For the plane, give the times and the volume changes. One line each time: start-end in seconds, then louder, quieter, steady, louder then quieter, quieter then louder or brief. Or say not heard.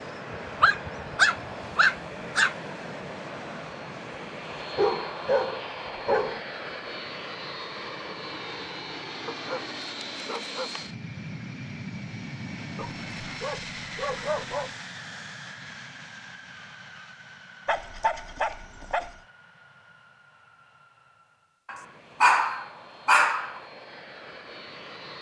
0.0-25.1 quieter.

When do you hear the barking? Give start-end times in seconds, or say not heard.
0.6-2.5, 4.8-6.4, 9.2-10.8, 12.8-14.7, 17.6-19.1, 21.6-23.6.